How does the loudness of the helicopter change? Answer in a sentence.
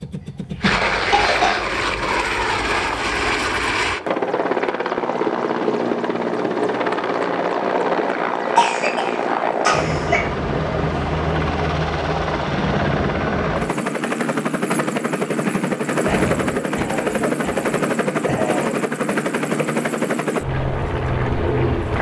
The loudness of the helicopter stays about the same.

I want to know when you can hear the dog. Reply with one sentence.
You can't hear the dog here.